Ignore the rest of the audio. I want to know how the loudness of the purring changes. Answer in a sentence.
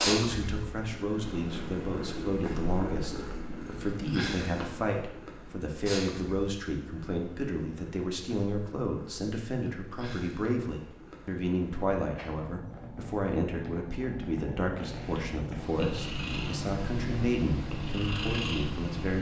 The loudness of the purring goes down, then up.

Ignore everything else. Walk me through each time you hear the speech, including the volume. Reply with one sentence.
You can hear the speech from 0.1 to 19.1 s, at a steady volume.